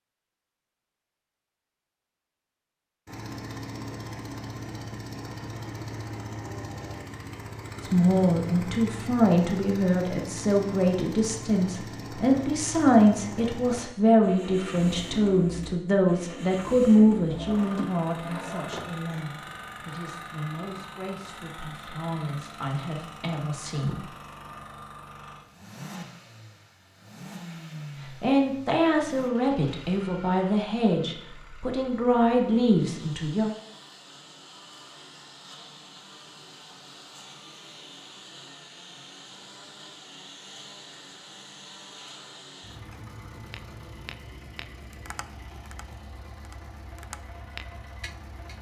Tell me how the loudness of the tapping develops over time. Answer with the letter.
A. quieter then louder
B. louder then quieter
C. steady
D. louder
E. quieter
A.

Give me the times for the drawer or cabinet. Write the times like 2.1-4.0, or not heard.
17.3-19.2.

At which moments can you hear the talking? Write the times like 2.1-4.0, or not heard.
7.8-24.1, 28.1-33.5.